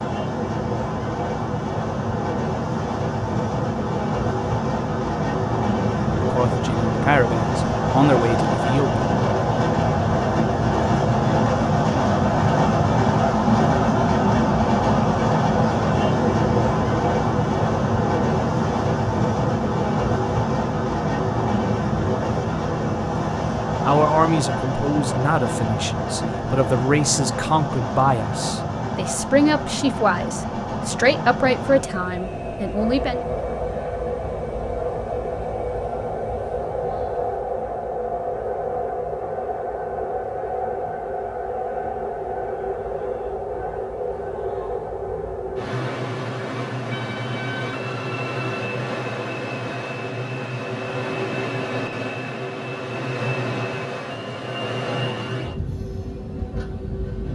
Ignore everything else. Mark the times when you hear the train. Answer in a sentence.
You can hear the train from 0.0 to 57.3 s.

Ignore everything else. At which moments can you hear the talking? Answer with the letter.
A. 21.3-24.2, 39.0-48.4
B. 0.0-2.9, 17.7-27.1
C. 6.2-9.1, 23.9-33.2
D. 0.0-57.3
C.